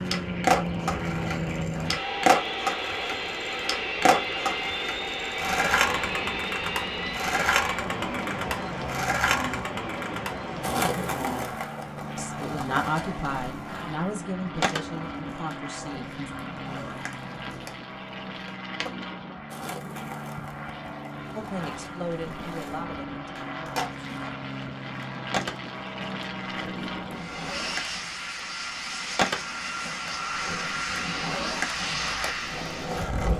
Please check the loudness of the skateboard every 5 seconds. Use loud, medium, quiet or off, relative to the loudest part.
loud, loud, medium, quiet, quiet, medium, medium.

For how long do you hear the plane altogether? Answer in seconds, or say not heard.
33 s.